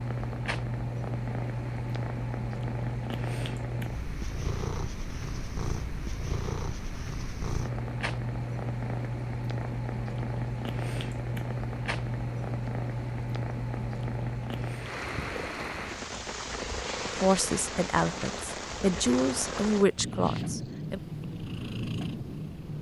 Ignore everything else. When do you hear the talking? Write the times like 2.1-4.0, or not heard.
17.1-21.0.